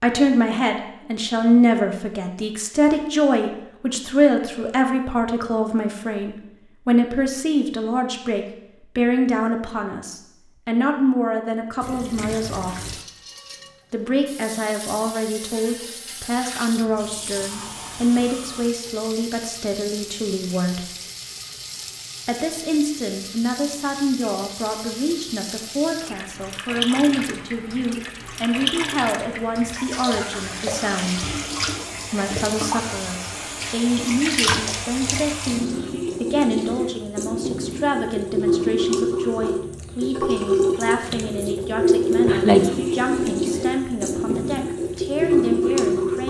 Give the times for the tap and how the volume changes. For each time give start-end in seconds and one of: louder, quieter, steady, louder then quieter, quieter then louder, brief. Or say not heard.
11.8-46.2 louder.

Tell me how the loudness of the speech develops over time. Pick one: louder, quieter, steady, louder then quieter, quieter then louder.
quieter.